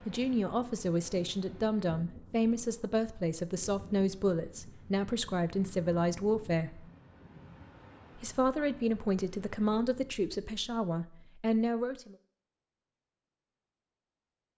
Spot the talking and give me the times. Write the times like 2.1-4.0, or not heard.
0.1-6.9, 8.2-12.2.